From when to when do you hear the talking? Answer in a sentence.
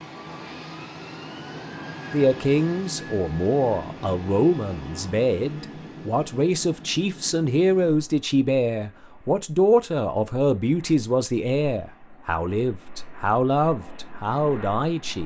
You can hear the talking from 2.1 to 15.2 s.